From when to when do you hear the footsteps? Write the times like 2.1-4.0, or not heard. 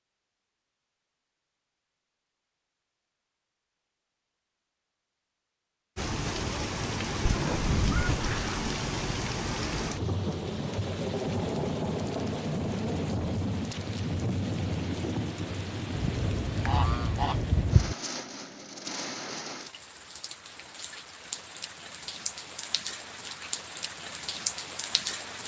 not heard.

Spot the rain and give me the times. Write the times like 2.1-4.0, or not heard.
6.0-25.4.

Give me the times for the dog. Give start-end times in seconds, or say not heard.
not heard.